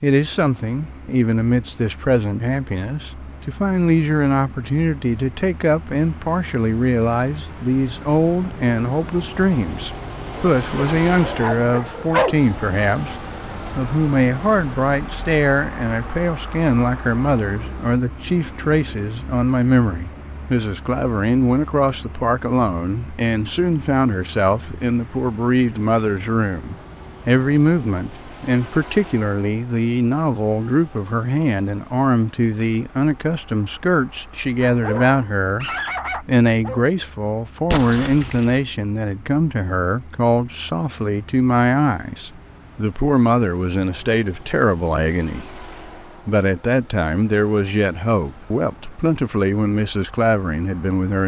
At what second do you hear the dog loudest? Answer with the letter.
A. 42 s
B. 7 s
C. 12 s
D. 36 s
C.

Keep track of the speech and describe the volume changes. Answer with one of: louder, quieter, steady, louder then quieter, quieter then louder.
steady.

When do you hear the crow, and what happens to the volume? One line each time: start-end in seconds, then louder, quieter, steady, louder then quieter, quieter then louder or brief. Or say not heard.
not heard.